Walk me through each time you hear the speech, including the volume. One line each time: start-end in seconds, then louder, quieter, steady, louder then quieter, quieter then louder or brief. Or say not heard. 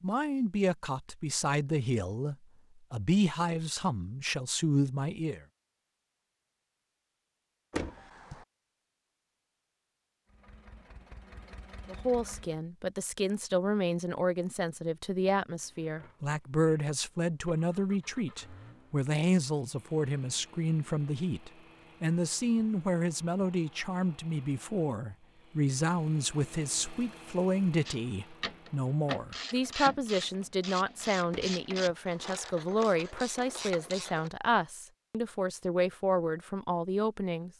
0.0-5.4 steady
11.8-37.5 steady.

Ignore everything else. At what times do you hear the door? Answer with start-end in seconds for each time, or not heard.
7.7-8.4, 31.3-32.0.